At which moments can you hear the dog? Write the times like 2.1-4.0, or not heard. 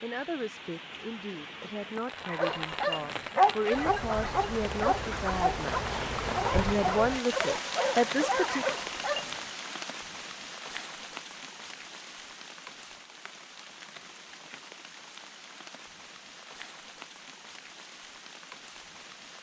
2.2-9.4.